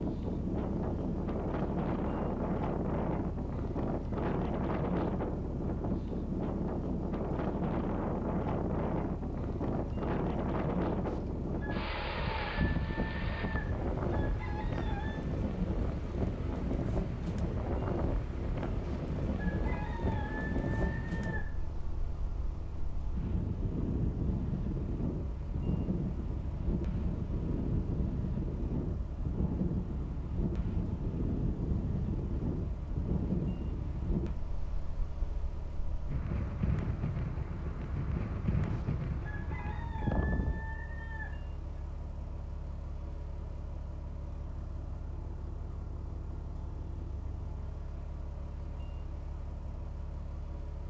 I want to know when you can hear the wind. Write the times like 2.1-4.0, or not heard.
0.0-40.7.